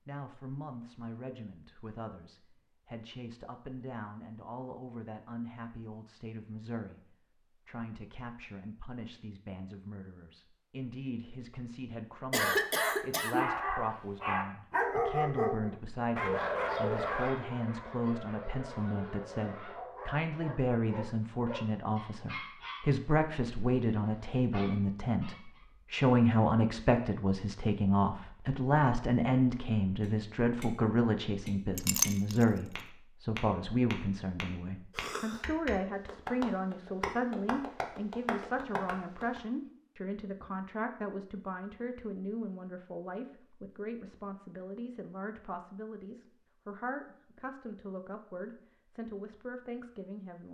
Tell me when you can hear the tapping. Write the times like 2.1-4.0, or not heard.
30.0-39.4.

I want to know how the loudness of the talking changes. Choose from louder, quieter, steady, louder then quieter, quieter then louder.
louder then quieter.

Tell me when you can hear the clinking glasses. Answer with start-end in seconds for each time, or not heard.
31.8-32.5.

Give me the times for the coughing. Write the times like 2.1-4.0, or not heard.
12.3-13.6, 35.0-35.4.